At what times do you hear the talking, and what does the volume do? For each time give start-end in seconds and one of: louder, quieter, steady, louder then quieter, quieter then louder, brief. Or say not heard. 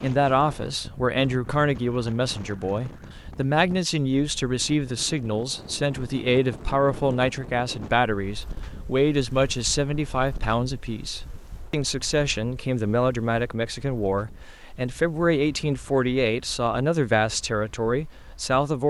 0.0-18.8 steady.